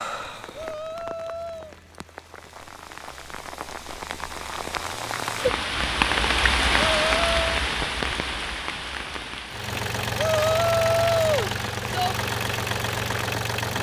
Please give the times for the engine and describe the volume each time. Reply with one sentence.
The engine can be heard from 9.4 to 13.7 s, at a steady volume.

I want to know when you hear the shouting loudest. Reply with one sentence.
The volume of the shouting peaks at 11 seconds.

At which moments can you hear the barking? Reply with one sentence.
The barking can't be heard in this clip.